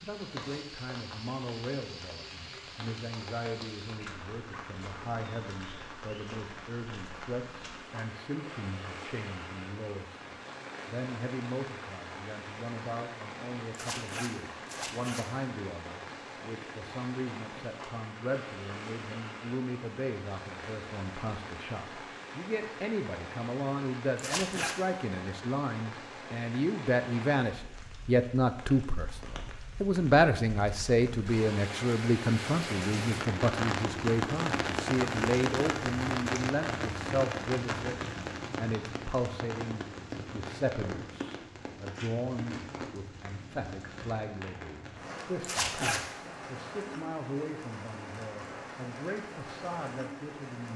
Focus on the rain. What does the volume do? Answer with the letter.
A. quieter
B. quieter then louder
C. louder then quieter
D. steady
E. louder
C.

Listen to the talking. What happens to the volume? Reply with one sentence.
The loudness of the talking goes up, then down.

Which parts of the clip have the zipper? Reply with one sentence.
The zipper can be heard from 13.7 to 15.2 s, from 24.1 to 24.8 s and from 45.4 to 46.0 s.